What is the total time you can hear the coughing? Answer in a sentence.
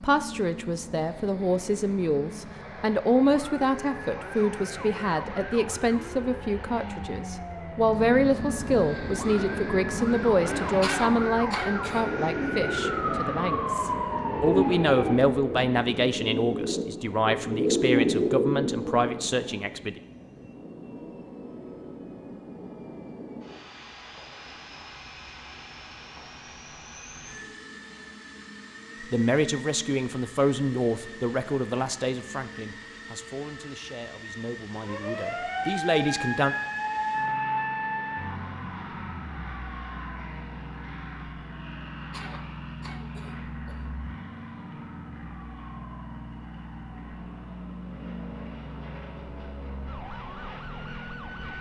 You can hear the coughing for 3 seconds altogether.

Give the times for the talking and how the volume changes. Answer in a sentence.
You can hear the talking from 0.0 to 20.0 s, at a steady volume; and from 29.0 to 36.5 s, getting quieter then louder.